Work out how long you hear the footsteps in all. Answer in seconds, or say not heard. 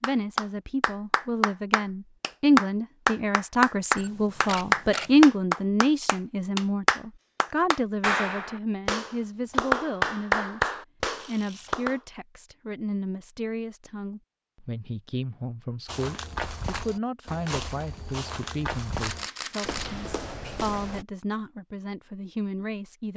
5 s.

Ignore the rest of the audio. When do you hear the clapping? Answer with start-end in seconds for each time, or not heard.
0.0-11.9.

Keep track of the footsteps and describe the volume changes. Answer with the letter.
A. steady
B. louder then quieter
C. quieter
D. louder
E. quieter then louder
A.